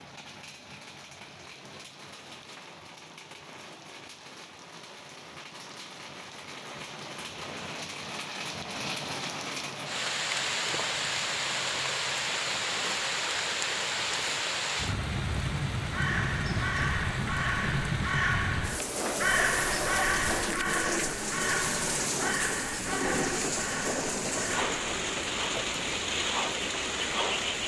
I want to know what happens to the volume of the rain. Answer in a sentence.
The loudness of the rain goes up.